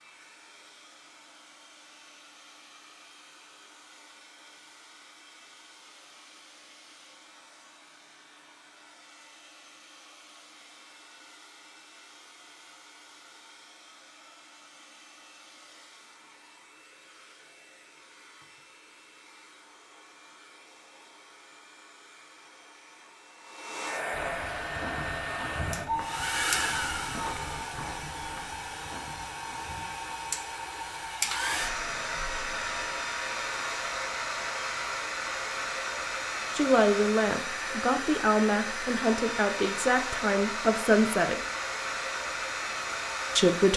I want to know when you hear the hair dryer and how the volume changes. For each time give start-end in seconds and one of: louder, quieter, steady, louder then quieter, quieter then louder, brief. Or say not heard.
0.0-43.7 louder.